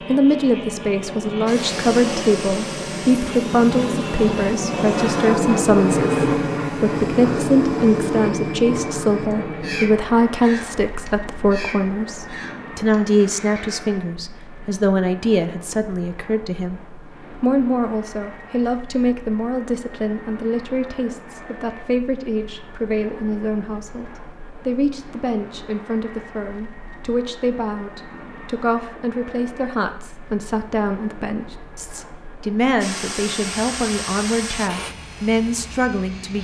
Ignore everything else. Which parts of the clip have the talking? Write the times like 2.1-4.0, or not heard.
0.1-36.3.